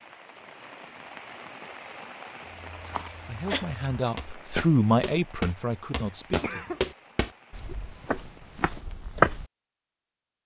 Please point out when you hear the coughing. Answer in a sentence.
You can hear the coughing from 2.8 to 3.6 s and from 6.0 to 6.8 s.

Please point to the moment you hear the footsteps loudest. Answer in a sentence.
The loudest moment of the footsteps is at 9 seconds.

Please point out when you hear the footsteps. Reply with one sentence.
You can hear the footsteps from 2.7 to 9.4 s.